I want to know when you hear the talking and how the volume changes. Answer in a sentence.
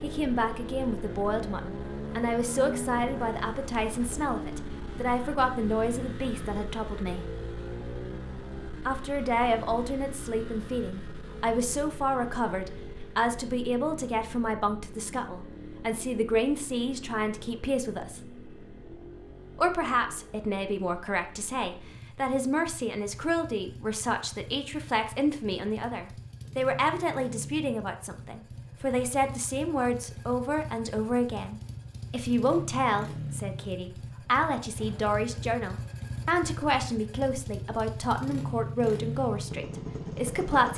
You can hear the talking from 0.0 to 7.2 s, at a steady volume; from 8.8 to 18.2 s, at a steady volume; and from 19.6 to 40.7 s, at a steady volume.